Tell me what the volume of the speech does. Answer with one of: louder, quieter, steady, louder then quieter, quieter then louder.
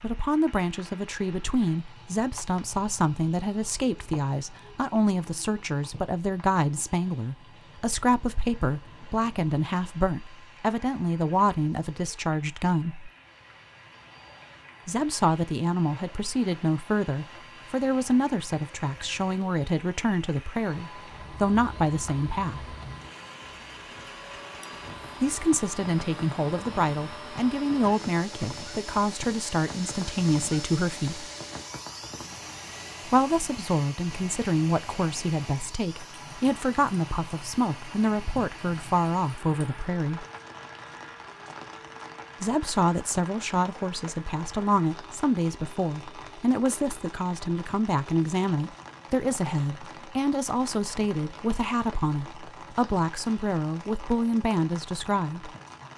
steady.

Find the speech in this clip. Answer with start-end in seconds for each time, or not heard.
0.0-13.1, 14.8-22.8, 25.2-31.3, 33.0-40.2, 42.4-55.5.